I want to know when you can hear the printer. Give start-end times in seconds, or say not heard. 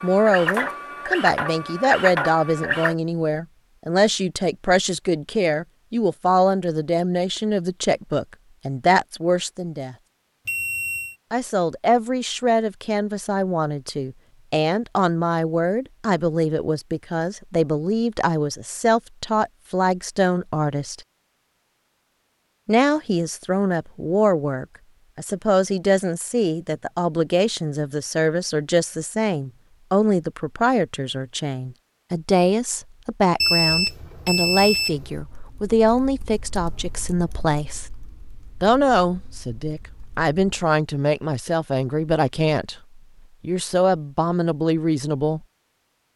0.0-3.0.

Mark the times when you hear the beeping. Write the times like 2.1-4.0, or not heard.
10.4-11.2, 33.4-35.2.